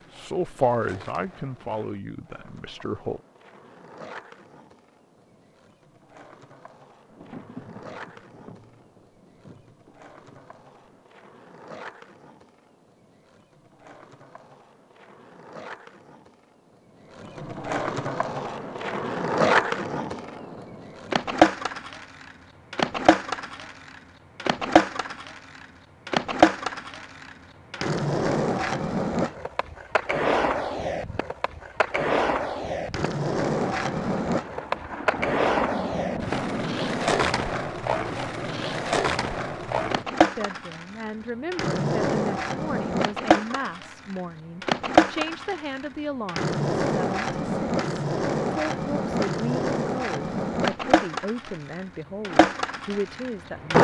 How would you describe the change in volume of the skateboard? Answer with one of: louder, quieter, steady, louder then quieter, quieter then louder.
louder.